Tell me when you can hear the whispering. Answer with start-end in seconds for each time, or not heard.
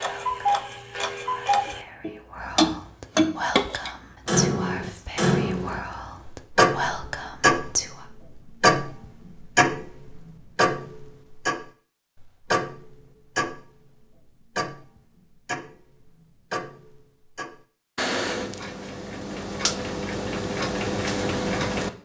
0.0-8.1.